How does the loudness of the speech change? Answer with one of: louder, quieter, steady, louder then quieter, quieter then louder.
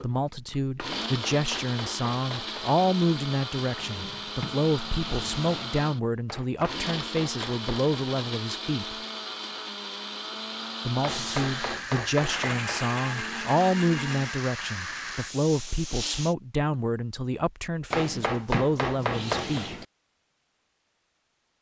steady.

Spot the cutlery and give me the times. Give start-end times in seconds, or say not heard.
not heard.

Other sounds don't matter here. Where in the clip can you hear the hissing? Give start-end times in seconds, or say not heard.
11.1-16.4.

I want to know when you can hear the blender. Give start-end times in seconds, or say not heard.
0.0-14.4.